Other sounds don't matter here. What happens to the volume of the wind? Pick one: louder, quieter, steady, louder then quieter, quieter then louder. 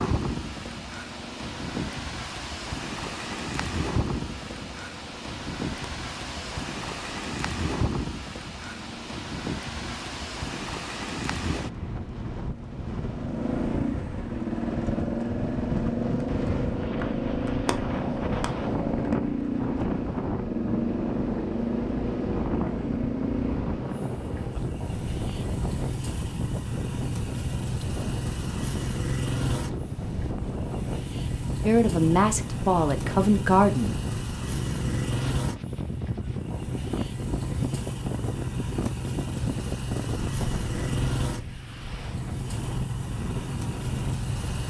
steady.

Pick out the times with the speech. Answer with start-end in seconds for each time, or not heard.
31.6-34.0.